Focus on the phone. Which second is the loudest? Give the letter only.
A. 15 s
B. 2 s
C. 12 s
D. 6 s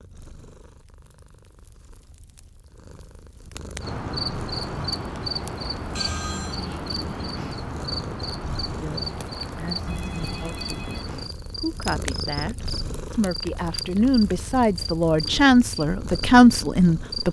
D.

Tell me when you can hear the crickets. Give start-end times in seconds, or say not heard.
3.8-17.2.